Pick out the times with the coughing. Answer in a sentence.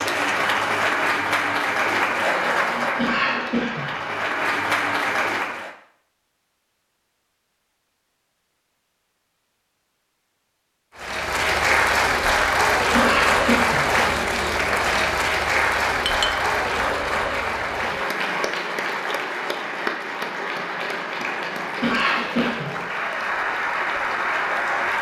The coughing can be heard from 3.0 to 4.0 s, from 12.9 to 13.9 s and from 21.8 to 22.8 s.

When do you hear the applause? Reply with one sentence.
You can hear the applause from 0.0 to 5.8 s and from 10.9 to 24.9 s.